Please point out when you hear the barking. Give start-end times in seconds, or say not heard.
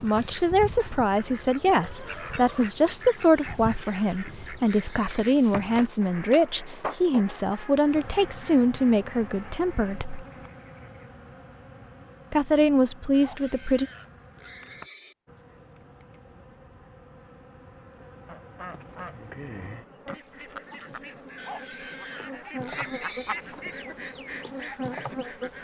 not heard.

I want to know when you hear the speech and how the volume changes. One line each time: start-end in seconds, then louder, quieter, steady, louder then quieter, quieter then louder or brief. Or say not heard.
0.0-10.2 steady
12.3-13.8 brief.